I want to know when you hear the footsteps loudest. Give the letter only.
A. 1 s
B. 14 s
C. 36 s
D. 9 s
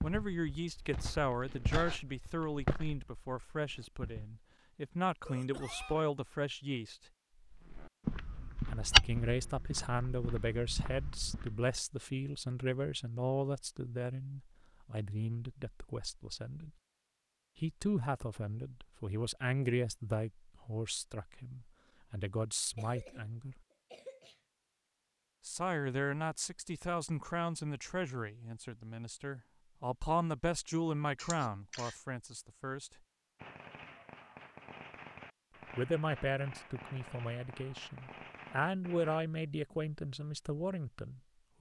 D.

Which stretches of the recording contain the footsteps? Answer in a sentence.
The footsteps can be heard from 0.0 to 4.4 s and from 7.5 to 11.6 s.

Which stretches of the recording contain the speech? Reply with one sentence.
You can hear the speech from 0.0 to 7.0 s, from 8.7 to 16.7 s, from 17.6 to 23.6 s, from 25.4 to 32.9 s and from 35.8 to 41.5 s.